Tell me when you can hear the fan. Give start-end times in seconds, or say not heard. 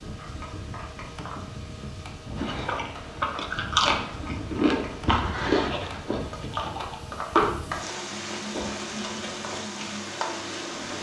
0.0-10.9.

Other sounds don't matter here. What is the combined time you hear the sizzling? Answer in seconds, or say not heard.
11 s.